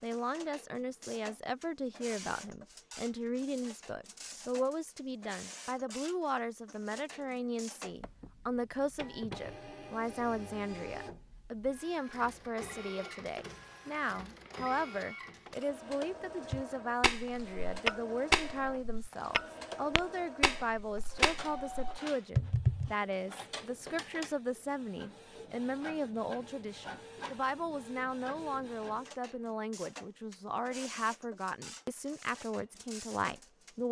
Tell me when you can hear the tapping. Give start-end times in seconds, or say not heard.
16.5-22.9.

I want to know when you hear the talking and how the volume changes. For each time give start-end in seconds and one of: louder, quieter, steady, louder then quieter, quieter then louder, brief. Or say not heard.
0.0-33.8 steady.